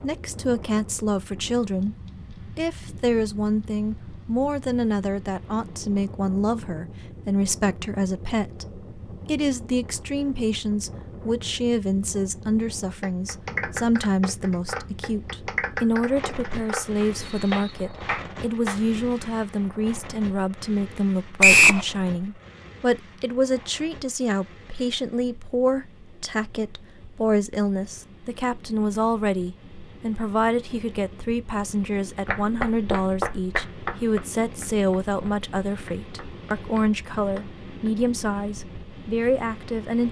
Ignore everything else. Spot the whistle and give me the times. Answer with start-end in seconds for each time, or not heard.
17.2-18.1, 21.4-21.9.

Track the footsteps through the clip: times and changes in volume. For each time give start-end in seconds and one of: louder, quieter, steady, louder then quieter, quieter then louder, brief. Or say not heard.
not heard.